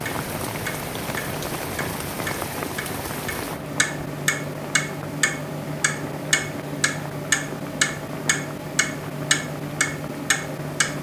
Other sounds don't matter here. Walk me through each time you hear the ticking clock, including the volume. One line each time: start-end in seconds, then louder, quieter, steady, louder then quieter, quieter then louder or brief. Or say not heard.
0.0-10.9 louder.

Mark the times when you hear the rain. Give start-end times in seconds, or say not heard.
0.0-10.9.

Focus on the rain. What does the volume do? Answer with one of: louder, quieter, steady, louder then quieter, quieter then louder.
quieter.